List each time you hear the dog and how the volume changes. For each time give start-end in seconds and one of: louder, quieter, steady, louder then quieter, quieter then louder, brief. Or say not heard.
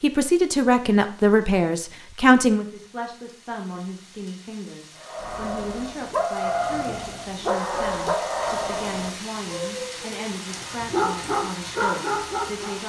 5.0-12.8 quieter then louder.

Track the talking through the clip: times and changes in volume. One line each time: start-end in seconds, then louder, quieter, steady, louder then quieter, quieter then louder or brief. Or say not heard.
0.0-12.8 quieter.